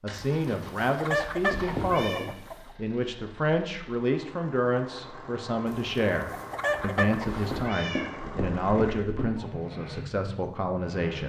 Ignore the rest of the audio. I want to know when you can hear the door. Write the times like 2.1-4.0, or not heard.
not heard.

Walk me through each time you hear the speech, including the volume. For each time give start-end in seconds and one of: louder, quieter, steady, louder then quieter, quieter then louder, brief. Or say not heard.
0.0-11.2 steady.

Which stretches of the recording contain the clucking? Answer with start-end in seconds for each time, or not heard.
0.1-2.7, 5.7-7.4.